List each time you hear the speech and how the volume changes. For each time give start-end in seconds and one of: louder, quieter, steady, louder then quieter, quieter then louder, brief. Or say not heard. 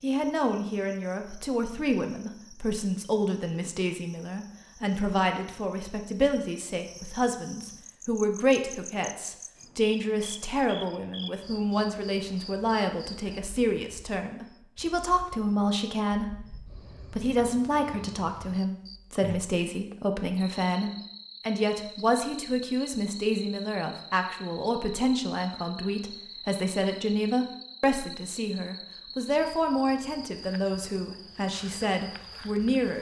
0.0-16.5 steady
17.1-32.9 steady.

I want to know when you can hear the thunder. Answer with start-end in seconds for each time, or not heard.
not heard.